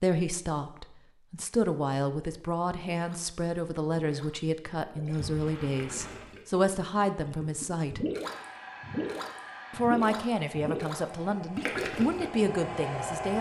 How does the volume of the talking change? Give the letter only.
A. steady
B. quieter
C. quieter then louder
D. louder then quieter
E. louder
A.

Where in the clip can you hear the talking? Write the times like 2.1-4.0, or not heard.
0.0-8.1, 9.7-13.3.